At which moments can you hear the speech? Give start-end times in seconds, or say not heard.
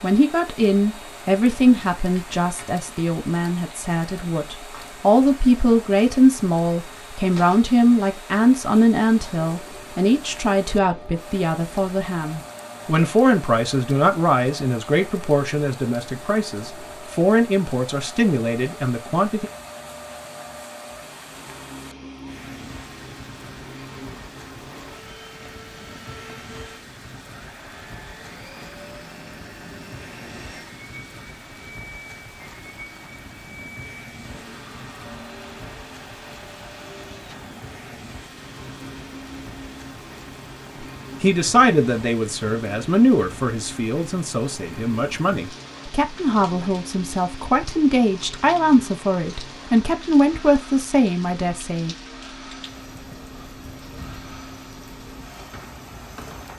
0.0-19.5, 41.2-52.0.